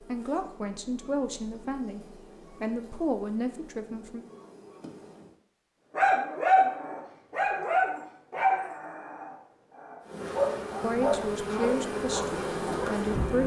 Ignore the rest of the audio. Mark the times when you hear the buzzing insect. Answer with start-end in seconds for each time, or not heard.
0.0-5.3, 10.0-13.4.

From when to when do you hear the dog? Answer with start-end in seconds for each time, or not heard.
6.0-13.0.